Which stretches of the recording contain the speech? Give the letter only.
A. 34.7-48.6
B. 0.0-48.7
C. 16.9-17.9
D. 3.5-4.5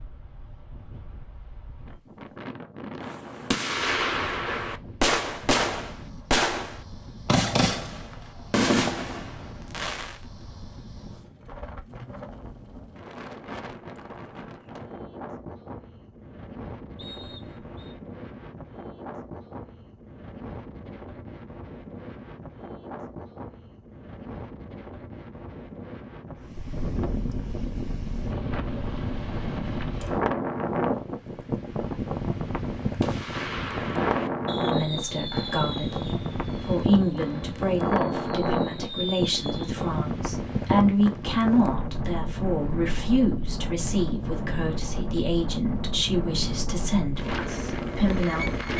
A.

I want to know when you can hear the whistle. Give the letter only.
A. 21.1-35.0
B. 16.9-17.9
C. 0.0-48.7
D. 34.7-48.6
B.